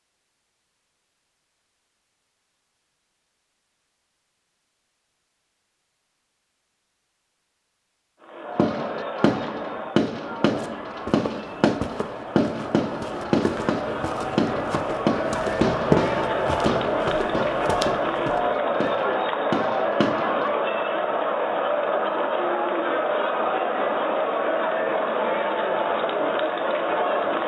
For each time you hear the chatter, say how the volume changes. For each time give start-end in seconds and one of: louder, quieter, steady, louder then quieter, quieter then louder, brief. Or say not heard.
8.2-27.4 louder.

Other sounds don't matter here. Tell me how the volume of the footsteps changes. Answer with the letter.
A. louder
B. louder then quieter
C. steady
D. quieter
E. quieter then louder
B.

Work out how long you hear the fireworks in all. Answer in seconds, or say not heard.
12 s.